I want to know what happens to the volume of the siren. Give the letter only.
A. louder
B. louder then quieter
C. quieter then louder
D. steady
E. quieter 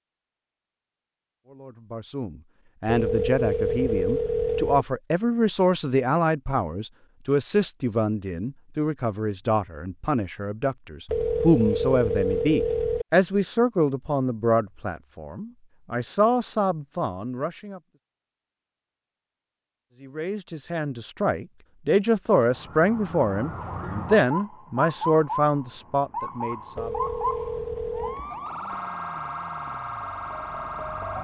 D.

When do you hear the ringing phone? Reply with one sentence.
The ringing phone can be heard from 2.9 to 4.8 s, from 11.1 to 13.1 s and from 26.8 to 28.2 s.